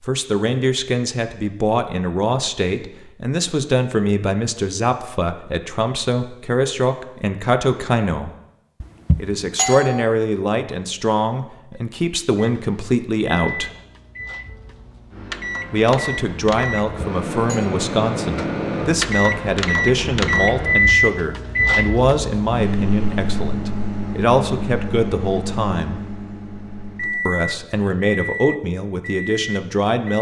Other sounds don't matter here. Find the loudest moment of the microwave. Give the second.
21 s.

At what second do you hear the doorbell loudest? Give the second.
10 s.